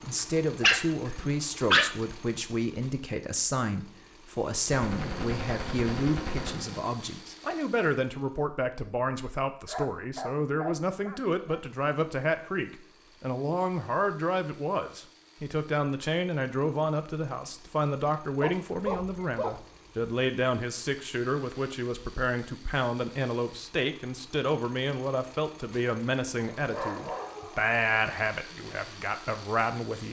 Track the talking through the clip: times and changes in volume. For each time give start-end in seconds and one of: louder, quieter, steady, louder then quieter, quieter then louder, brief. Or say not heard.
0.0-30.0 steady.